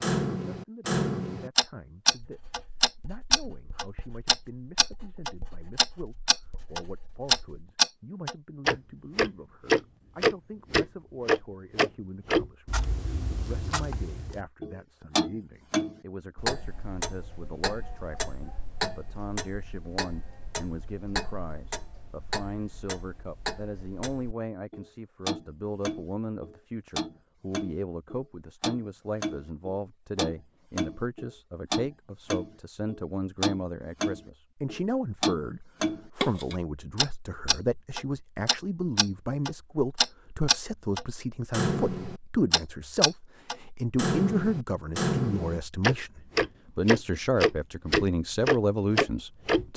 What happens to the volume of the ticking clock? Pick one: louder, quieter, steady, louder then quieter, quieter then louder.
quieter then louder.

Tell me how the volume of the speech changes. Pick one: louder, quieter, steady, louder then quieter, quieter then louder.
louder.